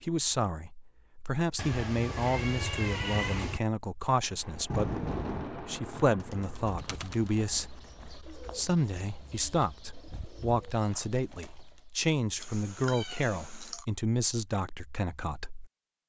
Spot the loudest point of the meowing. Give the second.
3 s.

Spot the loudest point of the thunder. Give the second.
5 s.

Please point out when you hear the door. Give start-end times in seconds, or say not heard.
not heard.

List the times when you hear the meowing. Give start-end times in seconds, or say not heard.
1.6-3.6, 12.4-13.8.